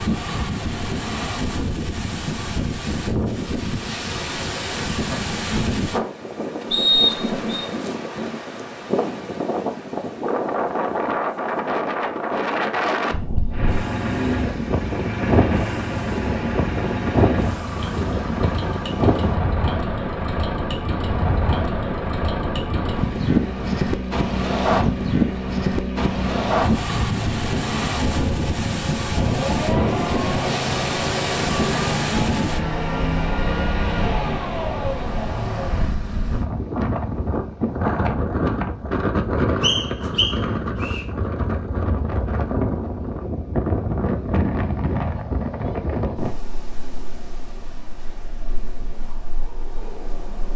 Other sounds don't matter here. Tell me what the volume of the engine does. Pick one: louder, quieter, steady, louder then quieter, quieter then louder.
steady.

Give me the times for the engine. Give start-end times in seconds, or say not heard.
13.5-35.9.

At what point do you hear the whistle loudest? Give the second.
7 s.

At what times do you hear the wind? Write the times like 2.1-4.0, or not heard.
0.0-50.5.